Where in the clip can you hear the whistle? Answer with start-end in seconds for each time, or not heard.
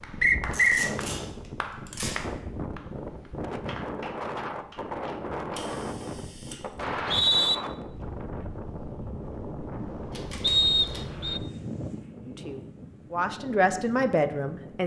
0.2-0.9, 6.8-7.5, 10.4-11.4.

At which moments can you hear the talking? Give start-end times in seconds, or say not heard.
12.2-14.8.